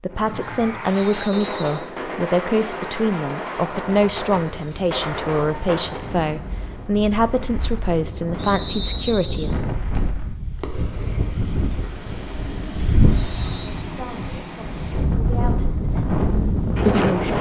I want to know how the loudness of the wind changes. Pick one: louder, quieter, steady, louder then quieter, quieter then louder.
louder.